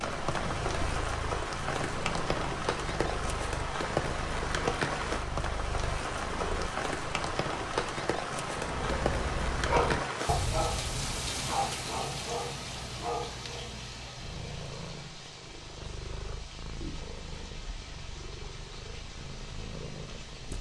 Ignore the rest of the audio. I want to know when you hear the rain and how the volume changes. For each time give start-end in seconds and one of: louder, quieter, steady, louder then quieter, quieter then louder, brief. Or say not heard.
0.0-20.5 quieter.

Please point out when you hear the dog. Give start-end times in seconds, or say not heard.
8.6-14.3.